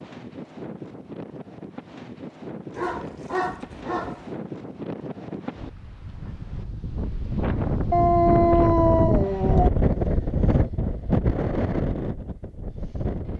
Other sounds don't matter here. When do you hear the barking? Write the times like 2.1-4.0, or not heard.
2.8-4.2, 7.9-9.7.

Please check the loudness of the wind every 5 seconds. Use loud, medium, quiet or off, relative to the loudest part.
medium, loud, loud.